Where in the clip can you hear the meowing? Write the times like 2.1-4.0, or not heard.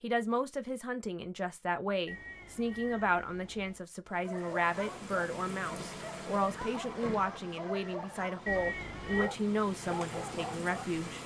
2.0-3.8, 8.4-9.3.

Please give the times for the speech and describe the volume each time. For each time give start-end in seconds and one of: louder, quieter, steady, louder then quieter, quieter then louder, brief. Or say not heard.
0.0-11.2 steady.